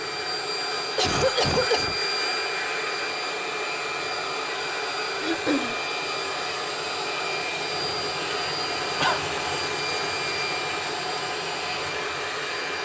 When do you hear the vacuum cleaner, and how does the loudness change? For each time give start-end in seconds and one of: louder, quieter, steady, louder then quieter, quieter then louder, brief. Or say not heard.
0.0-12.8 steady.